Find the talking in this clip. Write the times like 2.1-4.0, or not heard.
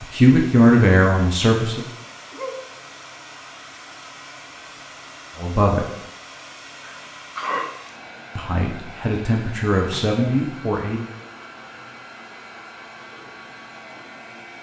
0.0-1.9, 5.3-5.8, 8.3-11.1.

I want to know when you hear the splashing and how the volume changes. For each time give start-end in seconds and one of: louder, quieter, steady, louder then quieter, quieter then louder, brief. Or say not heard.
not heard.